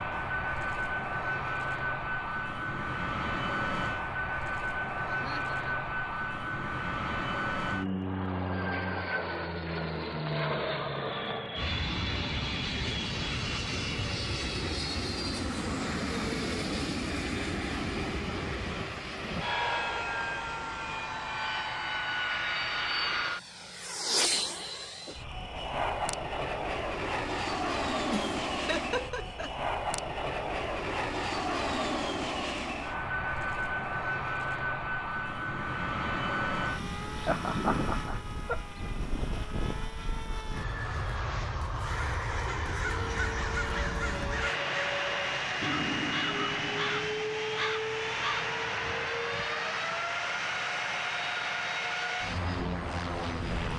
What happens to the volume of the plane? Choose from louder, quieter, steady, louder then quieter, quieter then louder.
steady.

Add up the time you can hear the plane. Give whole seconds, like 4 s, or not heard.
54 s.